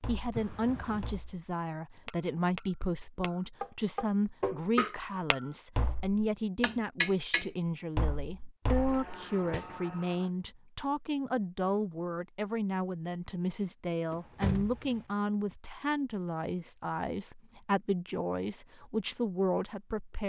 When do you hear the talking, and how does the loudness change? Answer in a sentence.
You can hear the talking from 0.1 to 20.2 s, at a steady volume.